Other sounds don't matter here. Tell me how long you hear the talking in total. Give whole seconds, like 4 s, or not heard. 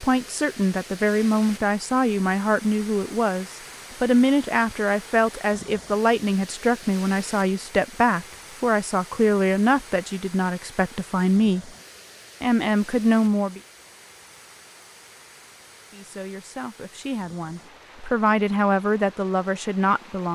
17 s.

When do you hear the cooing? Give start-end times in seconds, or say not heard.
not heard.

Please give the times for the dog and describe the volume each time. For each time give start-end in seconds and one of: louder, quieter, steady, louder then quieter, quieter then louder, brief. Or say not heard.
not heard.